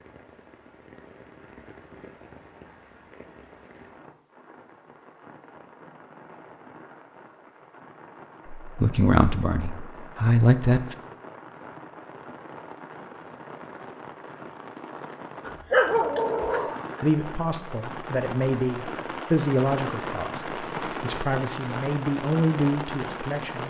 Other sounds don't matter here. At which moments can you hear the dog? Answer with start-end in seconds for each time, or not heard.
15.4-17.1.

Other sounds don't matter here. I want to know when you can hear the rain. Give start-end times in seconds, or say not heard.
0.0-23.6.